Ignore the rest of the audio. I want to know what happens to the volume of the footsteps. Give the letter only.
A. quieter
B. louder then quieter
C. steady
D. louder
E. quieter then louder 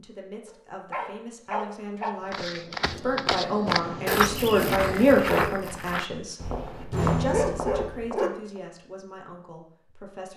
A.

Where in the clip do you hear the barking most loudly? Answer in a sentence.
The volume of the barking peaks at 7 seconds.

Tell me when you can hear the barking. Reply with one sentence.
You can hear the barking from 0.5 to 2.1 s and from 6.3 to 8.3 s.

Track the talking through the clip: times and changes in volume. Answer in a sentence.
You can hear the talking from 0.0 to 10.3 s, getting louder then quieter.